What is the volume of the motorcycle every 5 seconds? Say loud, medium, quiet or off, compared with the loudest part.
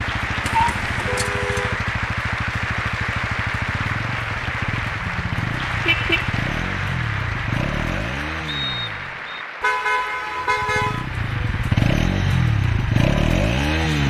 medium, medium, loud.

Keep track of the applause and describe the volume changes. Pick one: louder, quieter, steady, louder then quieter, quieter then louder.
quieter.